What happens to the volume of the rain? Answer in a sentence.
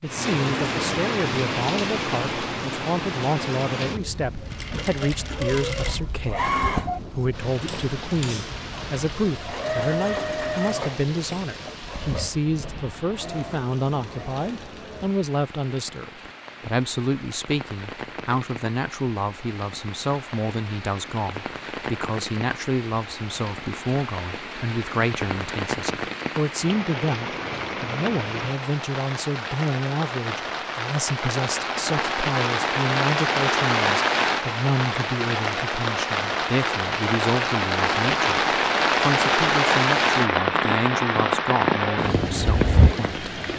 The volume of the rain goes down, then up.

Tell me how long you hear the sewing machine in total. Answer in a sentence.
The sewing machine can be heard for 10 seconds in total.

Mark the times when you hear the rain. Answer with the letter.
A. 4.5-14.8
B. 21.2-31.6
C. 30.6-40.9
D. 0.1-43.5
D.